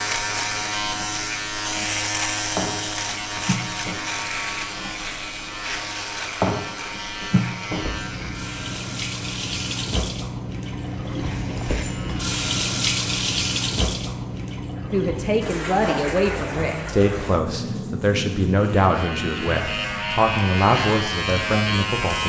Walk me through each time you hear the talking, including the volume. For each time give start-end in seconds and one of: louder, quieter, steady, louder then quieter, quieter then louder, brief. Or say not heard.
14.9-22.2 steady.